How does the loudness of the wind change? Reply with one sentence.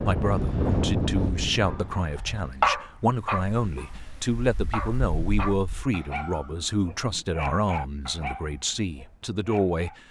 The loudness of the wind goes down, then up.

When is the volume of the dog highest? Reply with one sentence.
The loudest moment of the dog is at 3 seconds.